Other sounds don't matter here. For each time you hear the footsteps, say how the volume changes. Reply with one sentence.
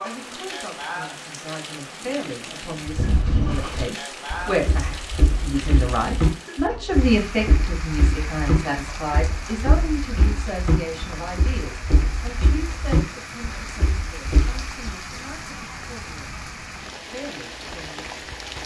The footsteps can be heard from 2.9 to 14.7 s, at a steady volume.